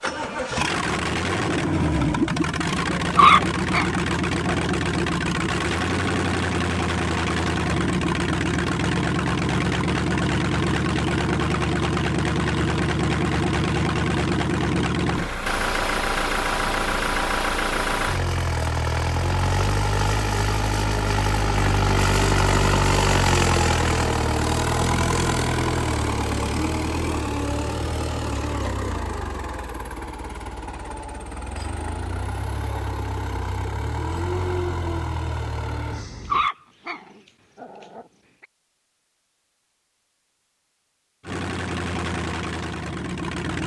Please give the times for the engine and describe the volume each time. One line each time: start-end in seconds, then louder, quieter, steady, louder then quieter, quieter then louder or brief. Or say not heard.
0.0-36.5 quieter
41.2-43.6 brief.